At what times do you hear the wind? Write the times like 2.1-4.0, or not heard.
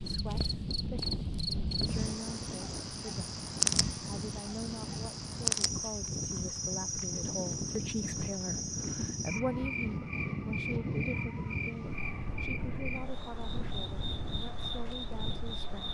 0.0-15.8.